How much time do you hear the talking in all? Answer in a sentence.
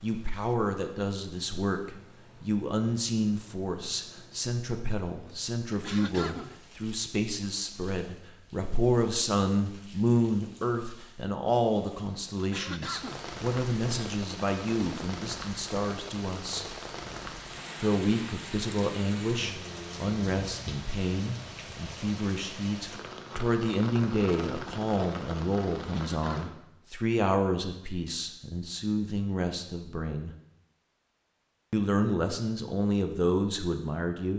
The talking can be heard for 32 seconds in total.